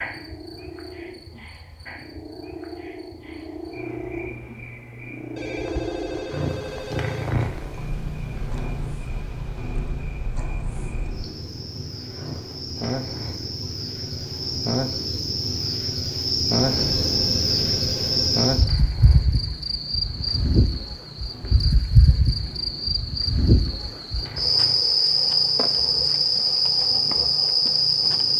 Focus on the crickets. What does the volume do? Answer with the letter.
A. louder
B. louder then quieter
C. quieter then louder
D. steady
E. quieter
A.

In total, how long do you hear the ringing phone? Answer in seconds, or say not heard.
4 s.